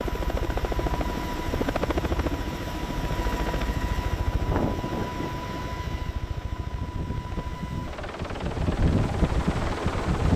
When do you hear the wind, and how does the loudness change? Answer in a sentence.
The wind can be heard from 4.3 to 10.3 s, getting quieter then louder.